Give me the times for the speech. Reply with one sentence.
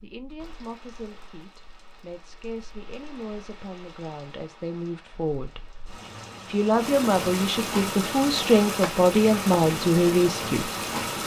You can hear the speech from 0.0 to 5.7 s and from 6.5 to 10.7 s.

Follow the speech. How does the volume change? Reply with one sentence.
The loudness of the speech goes up.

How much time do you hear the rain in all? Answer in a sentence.
You can hear the rain for 11 seconds altogether.